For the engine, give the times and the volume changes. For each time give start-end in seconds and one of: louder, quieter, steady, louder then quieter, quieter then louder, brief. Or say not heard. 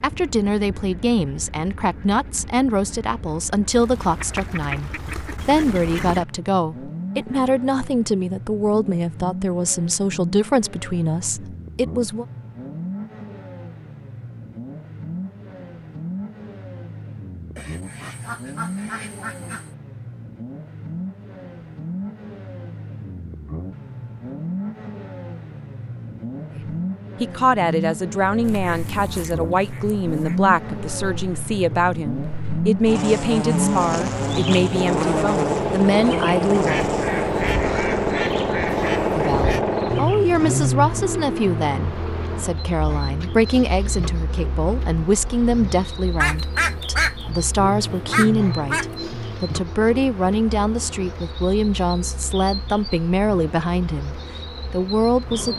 0.0-55.5 louder then quieter.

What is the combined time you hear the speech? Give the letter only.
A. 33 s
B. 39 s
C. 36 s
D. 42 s
B.